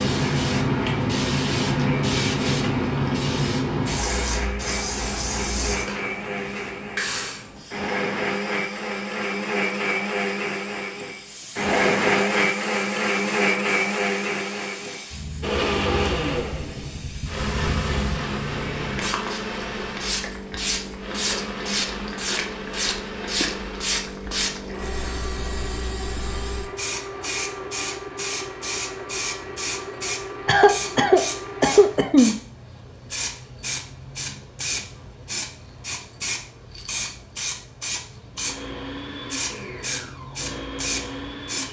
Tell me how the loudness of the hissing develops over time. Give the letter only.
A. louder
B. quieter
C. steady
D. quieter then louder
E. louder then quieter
D.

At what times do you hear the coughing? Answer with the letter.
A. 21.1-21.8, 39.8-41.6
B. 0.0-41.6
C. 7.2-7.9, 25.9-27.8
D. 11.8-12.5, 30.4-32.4
D.